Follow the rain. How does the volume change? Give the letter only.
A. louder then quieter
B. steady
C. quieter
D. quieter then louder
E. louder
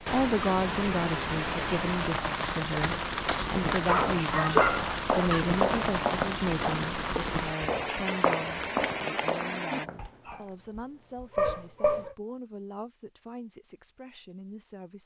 B.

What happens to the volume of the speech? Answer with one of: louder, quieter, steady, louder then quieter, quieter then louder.
quieter.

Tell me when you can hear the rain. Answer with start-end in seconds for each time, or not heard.
0.0-9.9.